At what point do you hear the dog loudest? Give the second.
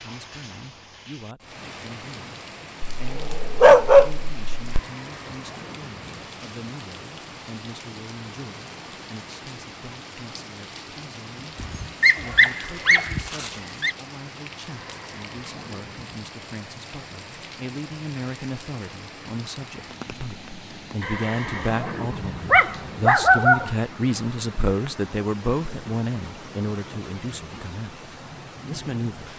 4 s.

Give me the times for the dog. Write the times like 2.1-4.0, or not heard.
3.0-4.8, 11.6-13.9, 22.5-23.7.